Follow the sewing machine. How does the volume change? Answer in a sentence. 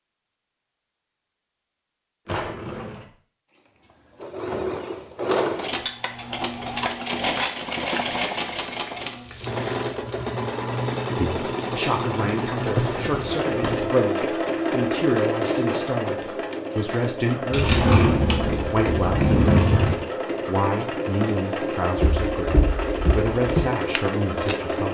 The loudness of the sewing machine stays about the same.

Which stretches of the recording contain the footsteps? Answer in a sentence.
The footsteps can be heard from 21.9 to 24.6 s.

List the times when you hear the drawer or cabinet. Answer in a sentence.
The drawer or cabinet can be heard from 2.2 to 3.1 s, from 12.7 to 13.9 s and from 17.5 to 20.0 s.